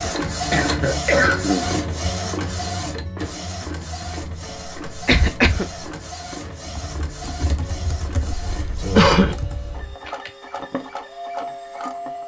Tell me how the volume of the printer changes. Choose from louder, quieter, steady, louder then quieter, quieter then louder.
quieter.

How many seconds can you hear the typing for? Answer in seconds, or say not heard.
4 s.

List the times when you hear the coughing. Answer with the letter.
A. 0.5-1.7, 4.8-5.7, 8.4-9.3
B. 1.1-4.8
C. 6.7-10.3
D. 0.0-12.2
A.